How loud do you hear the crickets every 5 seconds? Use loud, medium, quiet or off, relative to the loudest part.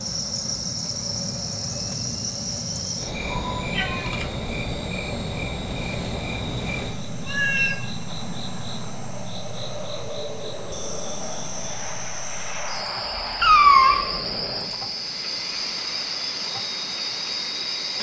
loud, medium, loud, loud.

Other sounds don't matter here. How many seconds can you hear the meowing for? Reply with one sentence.
You can hear the meowing for 2 seconds altogether.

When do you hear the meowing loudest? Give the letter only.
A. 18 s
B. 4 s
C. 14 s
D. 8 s
C.